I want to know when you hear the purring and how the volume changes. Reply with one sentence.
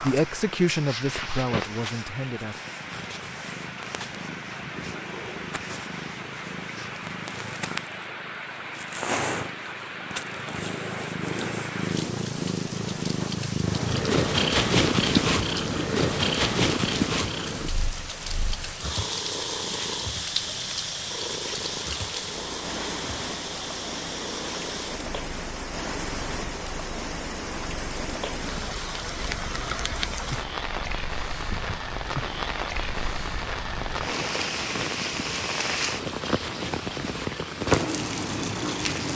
You can hear the purring from 0.0 to 38.9 s, getting louder then quieter.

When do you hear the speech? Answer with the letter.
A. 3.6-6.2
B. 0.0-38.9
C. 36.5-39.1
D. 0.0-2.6
D.